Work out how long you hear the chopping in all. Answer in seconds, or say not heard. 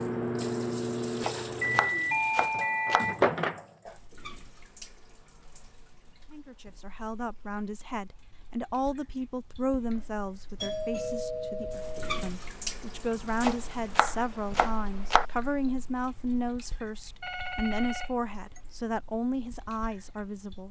4 s.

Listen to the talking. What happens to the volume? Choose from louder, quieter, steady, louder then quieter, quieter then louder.
steady.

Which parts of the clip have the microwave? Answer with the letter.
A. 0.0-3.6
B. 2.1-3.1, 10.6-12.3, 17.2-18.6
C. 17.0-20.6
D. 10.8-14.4
A.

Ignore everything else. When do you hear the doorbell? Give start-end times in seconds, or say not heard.
2.1-3.1, 10.6-12.3, 17.2-18.6.